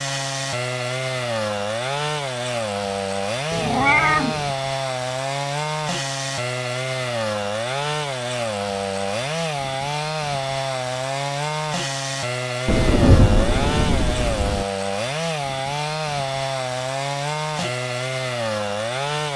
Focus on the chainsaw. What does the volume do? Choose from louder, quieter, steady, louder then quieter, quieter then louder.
steady.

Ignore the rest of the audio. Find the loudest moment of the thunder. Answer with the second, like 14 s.
13 s.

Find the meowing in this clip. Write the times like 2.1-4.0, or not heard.
3.5-4.5.